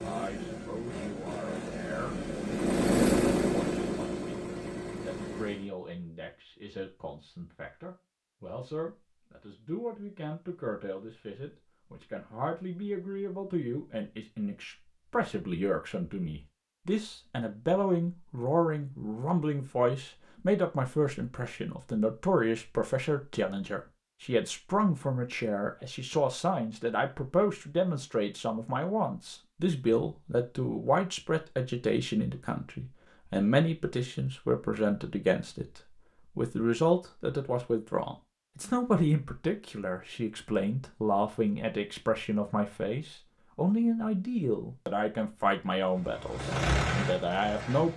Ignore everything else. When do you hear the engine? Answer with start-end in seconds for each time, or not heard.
0.0-5.7, 45.8-47.9.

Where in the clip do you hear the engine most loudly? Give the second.
3 s.